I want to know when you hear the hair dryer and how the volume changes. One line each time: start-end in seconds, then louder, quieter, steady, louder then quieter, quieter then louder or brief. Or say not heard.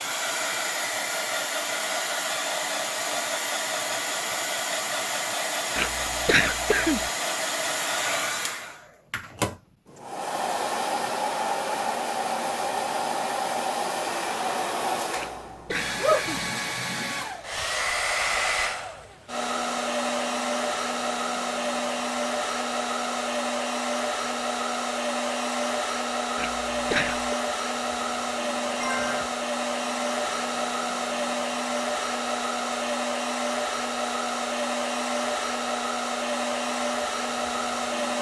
0.0-38.1 steady.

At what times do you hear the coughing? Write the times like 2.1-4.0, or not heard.
5.8-7.1, 15.2-16.4, 26.4-27.4.